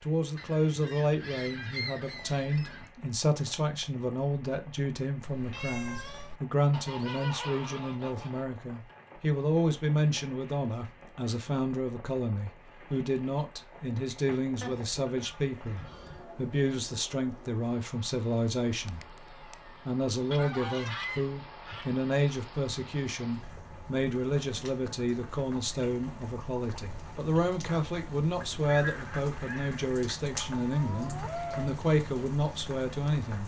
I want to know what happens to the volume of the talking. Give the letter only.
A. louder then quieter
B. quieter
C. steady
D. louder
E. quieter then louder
C.